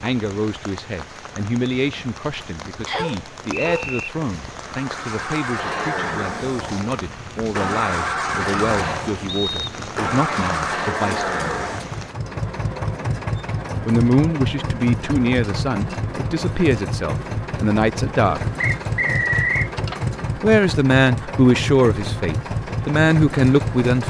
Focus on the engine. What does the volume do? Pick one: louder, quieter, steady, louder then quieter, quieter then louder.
steady.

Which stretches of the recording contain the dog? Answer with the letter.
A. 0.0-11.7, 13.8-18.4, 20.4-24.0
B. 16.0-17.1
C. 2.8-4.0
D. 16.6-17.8
C.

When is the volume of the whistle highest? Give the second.
19 s.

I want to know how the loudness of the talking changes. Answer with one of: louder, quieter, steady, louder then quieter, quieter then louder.
louder.